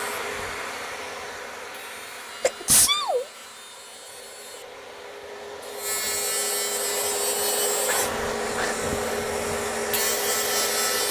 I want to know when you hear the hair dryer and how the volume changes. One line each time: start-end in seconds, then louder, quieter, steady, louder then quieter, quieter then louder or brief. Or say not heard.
0.0-11.0 quieter then louder.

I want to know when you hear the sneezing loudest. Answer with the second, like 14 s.
3 s.